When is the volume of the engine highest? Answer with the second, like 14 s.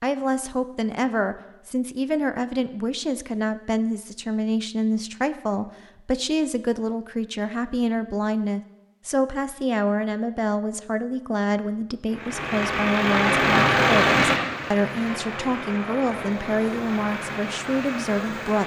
14 s.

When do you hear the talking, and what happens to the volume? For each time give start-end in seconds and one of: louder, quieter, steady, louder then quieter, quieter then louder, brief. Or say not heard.
0.0-18.6 steady.